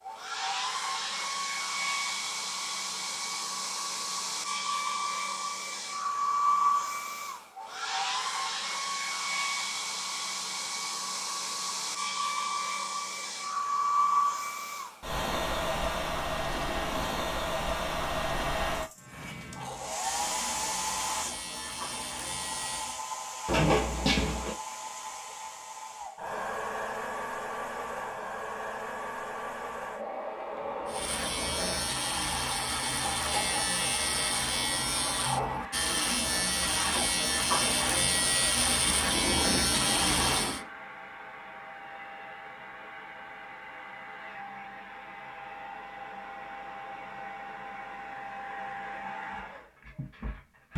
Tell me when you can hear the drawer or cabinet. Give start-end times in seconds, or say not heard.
23.4-24.6.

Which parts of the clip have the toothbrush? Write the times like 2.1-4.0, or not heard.
not heard.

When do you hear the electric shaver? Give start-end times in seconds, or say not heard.
18.9-23.1, 30.9-40.6.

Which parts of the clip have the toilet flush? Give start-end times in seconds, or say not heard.
16.4-17.1, 39.0-40.7.